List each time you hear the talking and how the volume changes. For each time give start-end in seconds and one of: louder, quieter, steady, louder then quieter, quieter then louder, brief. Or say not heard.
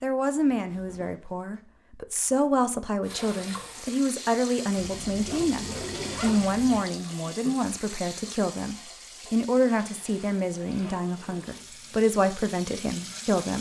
0.0-13.5 steady.